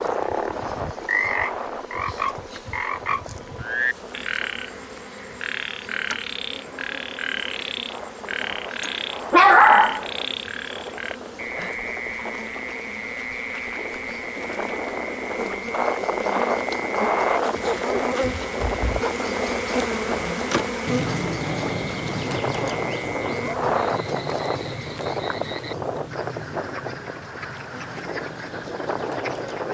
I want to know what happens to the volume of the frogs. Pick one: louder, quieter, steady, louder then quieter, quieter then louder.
quieter.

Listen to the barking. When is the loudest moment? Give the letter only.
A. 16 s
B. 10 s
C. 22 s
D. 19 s
B.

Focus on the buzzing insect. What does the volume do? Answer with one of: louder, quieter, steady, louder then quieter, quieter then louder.
louder then quieter.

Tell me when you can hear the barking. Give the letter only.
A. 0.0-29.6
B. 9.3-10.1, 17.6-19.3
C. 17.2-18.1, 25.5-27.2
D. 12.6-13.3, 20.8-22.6
B.